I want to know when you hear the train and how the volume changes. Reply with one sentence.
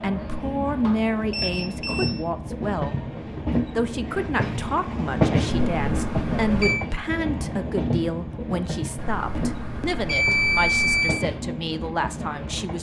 The train can be heard from 0.0 to 12.7 s, getting louder then quieter.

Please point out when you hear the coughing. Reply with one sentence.
You can't hear the coughing here.